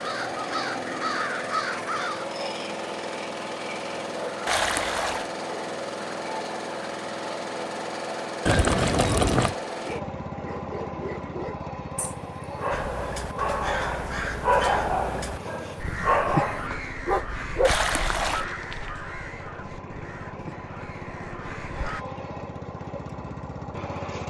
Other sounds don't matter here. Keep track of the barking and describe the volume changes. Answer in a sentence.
The volume of the barking goes up.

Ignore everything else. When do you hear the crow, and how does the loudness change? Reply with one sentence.
You can hear the crow briefly from 0.0 to 2.2 s; and from 12.7 to 22.1 s, getting quieter.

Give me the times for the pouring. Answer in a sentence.
You can hear the pouring from 4.5 to 5.3 s, from 8.4 to 9.6 s and from 17.6 to 18.4 s.